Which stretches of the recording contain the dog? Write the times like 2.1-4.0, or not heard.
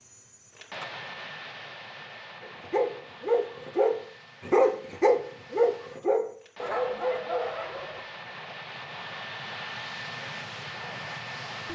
2.4-8.1.